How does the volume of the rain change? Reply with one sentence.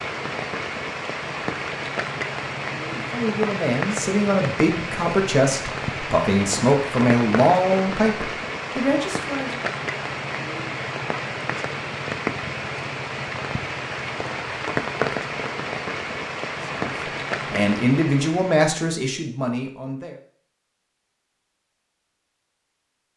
The loudness of the rain stays about the same.